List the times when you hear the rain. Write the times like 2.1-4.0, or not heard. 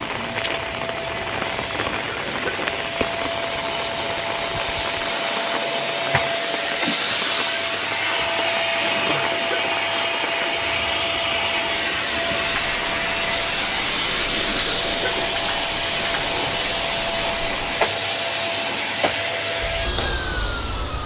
0.0-21.0.